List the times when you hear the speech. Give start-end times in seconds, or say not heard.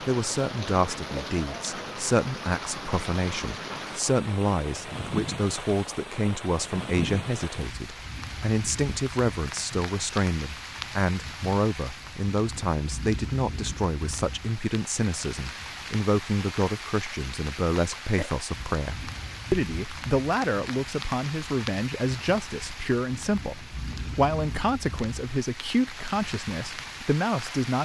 0.1-27.8.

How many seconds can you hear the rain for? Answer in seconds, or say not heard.
28 s.